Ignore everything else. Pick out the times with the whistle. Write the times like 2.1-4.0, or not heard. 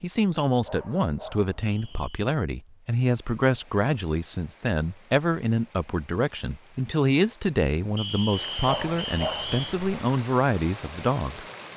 1.7-2.1, 8.0-9.8.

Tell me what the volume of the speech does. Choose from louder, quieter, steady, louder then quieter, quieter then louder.
steady.